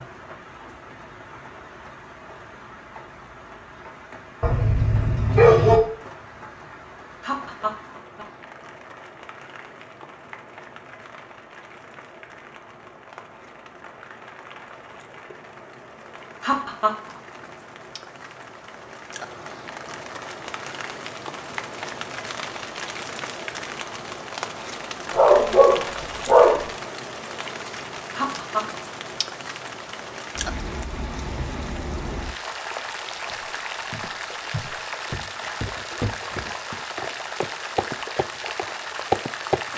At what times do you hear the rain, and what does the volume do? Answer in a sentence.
The rain can be heard from 0.0 to 39.7 s, getting louder.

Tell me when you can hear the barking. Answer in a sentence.
The barking can be heard from 4.4 to 5.8 s and from 25.1 to 26.6 s.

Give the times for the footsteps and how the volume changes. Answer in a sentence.
You can hear the footsteps from 33.3 to 39.6 s, getting louder.